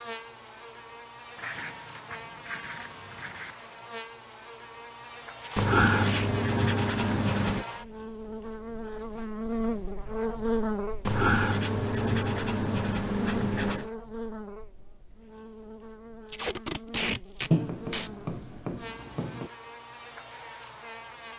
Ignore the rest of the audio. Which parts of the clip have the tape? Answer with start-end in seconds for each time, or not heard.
5.4-6.3, 16.2-18.1.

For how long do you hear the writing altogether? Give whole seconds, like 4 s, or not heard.
9 s.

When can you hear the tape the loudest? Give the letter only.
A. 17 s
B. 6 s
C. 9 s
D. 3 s
A.